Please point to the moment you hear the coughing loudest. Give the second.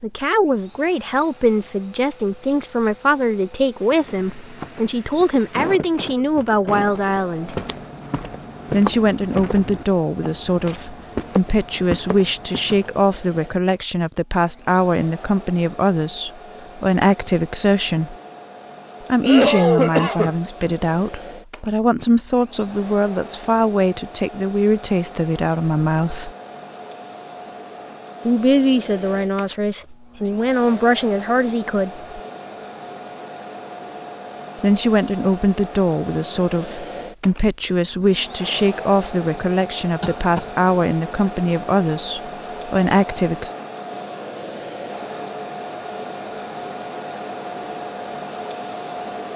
20 s.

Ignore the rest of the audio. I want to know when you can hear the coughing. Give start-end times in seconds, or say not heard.
5.5-7.0, 19.2-20.4, 40.0-40.5.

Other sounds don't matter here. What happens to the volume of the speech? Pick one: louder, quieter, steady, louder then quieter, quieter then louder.
steady.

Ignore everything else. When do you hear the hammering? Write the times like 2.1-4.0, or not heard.
not heard.